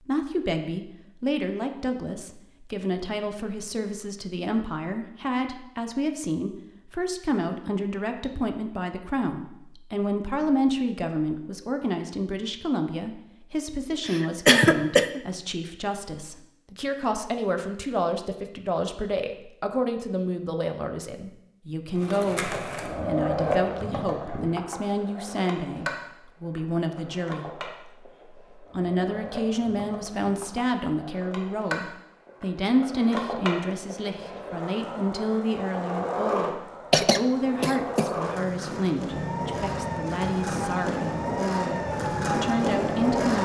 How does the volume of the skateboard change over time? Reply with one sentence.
The loudness of the skateboard goes down, then up.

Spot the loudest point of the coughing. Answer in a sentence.
The volume of the coughing peaks at 15 seconds.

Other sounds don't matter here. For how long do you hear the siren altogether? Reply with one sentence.
The siren can be heard for 4 seconds in total.